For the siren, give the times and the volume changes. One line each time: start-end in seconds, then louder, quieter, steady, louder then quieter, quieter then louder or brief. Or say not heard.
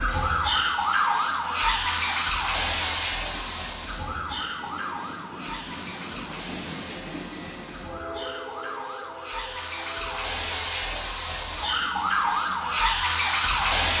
0.0-13.9 quieter then louder.